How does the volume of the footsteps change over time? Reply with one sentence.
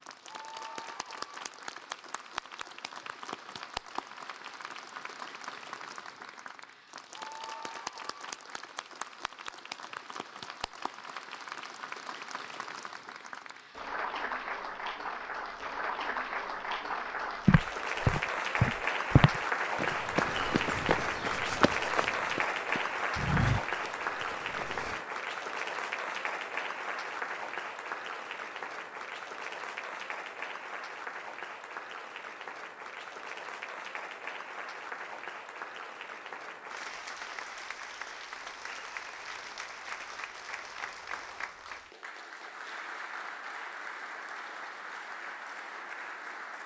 The volume of the footsteps goes down, then up.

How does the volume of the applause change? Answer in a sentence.
The volume of the applause goes up, then down.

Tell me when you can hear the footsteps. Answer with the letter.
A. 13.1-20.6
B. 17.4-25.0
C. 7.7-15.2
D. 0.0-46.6
B.